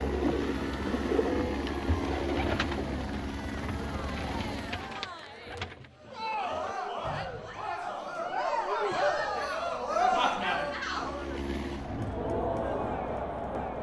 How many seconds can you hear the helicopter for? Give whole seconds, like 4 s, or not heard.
8 s.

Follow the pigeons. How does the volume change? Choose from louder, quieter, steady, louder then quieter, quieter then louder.
quieter.